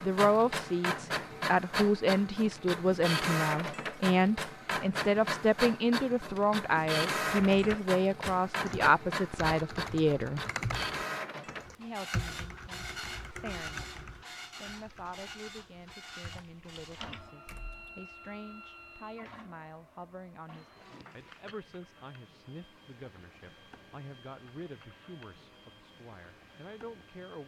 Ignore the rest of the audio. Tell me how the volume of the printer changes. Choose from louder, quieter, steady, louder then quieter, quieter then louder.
quieter.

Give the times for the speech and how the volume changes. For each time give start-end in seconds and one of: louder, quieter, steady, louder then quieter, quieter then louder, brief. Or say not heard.
0.0-10.4 steady
11.8-27.4 steady.